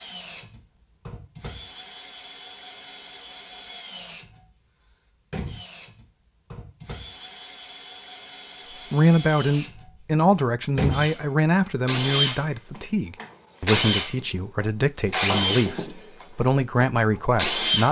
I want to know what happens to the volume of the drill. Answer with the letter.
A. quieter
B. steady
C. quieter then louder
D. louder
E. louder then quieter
D.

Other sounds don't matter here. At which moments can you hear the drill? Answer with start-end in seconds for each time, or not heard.
0.0-17.8.